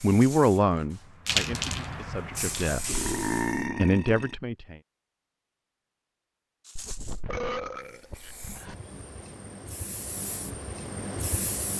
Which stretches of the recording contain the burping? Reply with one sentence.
The burping can be heard from 2.9 to 4.3 s and from 6.8 to 8.8 s.